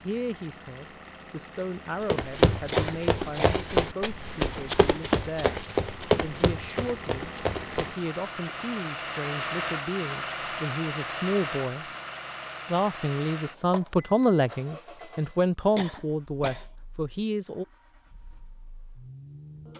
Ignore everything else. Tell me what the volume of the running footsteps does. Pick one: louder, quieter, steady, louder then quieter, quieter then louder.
quieter.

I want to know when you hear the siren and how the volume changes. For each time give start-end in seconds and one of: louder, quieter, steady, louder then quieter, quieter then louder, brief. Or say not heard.
not heard.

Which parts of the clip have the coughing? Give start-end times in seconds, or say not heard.
2.7-3.6, 15.8-16.7.